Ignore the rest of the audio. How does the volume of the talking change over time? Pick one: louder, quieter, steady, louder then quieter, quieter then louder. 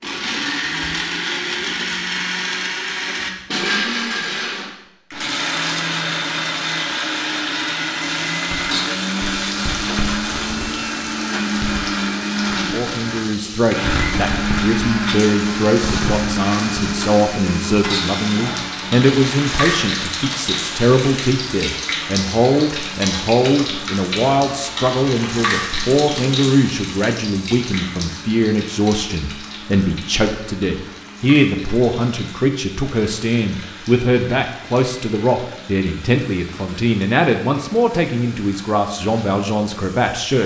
steady.